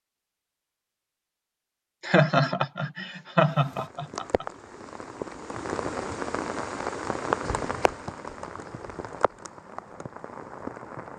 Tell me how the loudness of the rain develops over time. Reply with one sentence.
The loudness of the rain goes up, then down.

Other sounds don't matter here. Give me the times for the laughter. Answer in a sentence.
You can hear the laughter from 2.0 to 4.5 s.